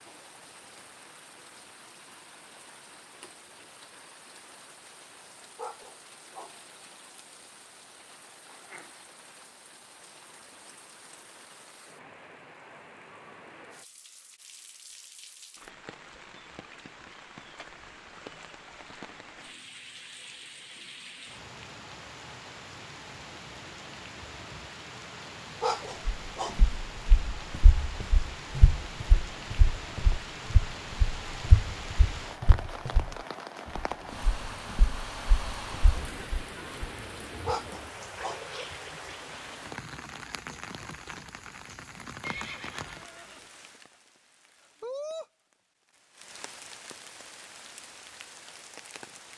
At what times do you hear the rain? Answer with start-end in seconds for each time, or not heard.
0.0-49.3.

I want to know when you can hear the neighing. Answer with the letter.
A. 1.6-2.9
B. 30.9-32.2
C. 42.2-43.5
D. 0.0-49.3
C.